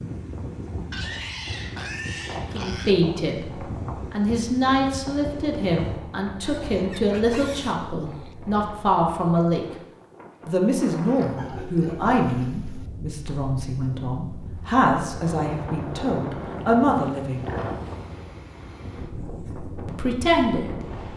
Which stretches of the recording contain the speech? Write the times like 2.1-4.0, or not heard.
2.5-9.7, 10.4-17.4, 19.9-20.8.